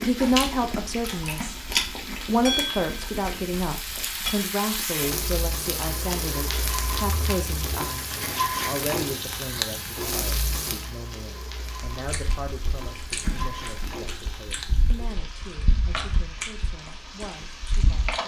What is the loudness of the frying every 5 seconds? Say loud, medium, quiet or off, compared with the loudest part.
loud, loud, medium, medium.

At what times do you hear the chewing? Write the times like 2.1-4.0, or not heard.
0.0-5.0, 11.9-18.2.